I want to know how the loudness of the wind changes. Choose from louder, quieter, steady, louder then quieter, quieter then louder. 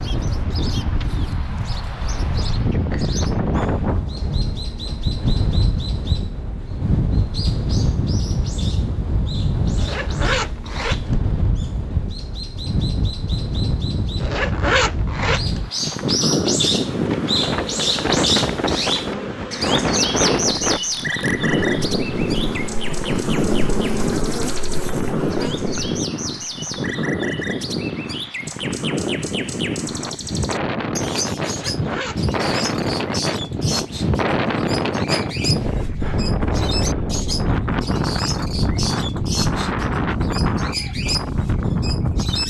steady.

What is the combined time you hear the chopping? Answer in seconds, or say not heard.
not heard.